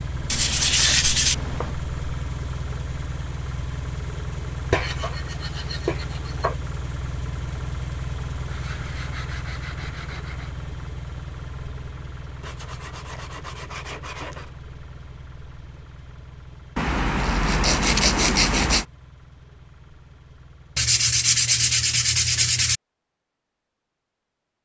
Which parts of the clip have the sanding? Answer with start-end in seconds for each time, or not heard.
0.3-1.7, 4.7-6.5, 8.4-10.6, 12.4-14.5, 16.8-18.9, 20.8-22.8.